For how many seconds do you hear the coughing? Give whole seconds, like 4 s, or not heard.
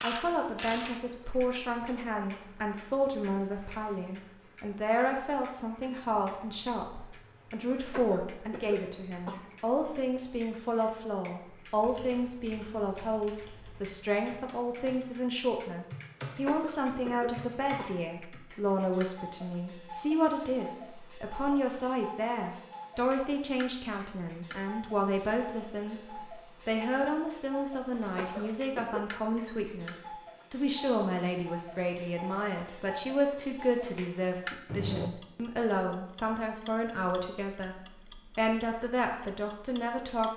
5 s.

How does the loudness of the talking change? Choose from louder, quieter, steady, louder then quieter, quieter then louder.
steady.